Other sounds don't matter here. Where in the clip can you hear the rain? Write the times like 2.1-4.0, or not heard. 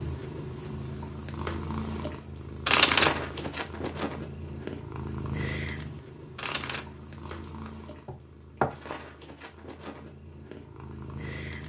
not heard.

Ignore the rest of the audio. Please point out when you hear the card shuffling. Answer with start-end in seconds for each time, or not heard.
2.6-3.6, 6.3-8.8.